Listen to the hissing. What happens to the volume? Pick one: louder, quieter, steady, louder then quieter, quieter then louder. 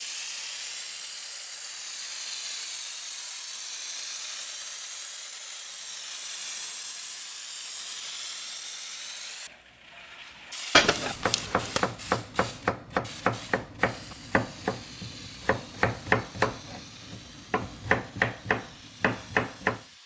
quieter.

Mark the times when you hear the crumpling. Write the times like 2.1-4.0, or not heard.
10.7-11.8.